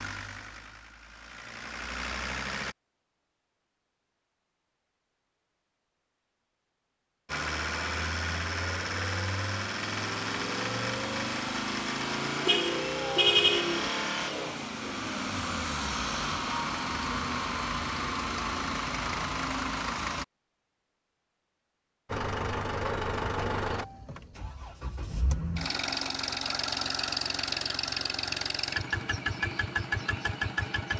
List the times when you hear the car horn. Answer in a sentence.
The car horn can be heard from 12.4 to 13.9 s.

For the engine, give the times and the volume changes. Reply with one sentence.
The engine can be heard briefly from 0.0 to 2.8 s; from 7.2 to 20.2 s, at a steady volume; and from 22.1 to 30.9 s, getting quieter then louder.